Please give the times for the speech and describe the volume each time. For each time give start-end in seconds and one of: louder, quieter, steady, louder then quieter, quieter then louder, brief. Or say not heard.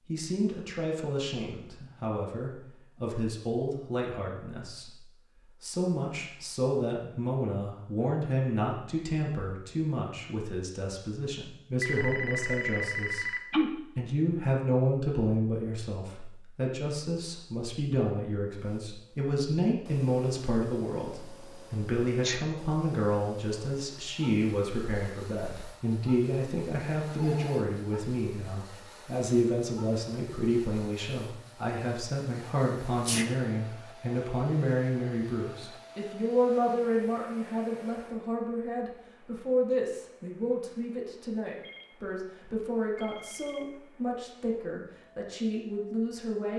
0.1-46.5 steady.